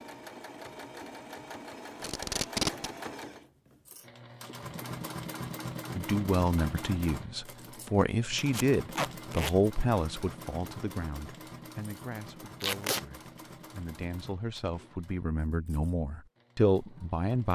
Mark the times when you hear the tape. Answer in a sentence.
You can hear the tape from 2.0 to 2.9 s, from 8.5 to 9.6 s and from 12.6 to 13.1 s.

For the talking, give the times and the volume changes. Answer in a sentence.
You can hear the talking from 6.0 to 17.5 s, getting quieter then louder.